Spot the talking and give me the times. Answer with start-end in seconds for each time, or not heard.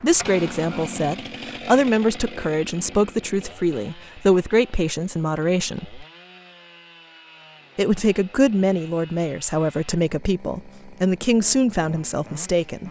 0.0-6.0, 7.8-12.8.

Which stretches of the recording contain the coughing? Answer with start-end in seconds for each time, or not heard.
not heard.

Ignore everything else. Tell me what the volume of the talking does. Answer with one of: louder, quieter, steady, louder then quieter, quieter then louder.
steady.